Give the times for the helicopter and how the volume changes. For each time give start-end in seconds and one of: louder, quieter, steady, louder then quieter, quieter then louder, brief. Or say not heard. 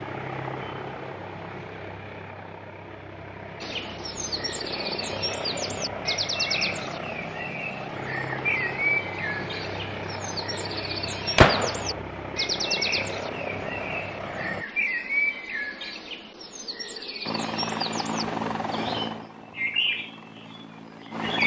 0.0-14.7 steady
17.2-21.4 quieter.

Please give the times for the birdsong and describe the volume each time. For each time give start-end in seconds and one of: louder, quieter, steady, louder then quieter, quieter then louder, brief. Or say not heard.
3.6-21.4 steady.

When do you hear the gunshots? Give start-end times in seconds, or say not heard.
11.3-12.0.